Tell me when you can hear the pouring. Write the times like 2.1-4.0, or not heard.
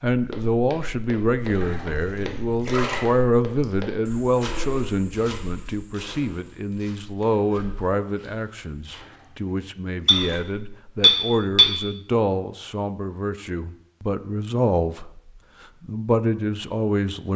1.4-3.0, 8.8-10.4.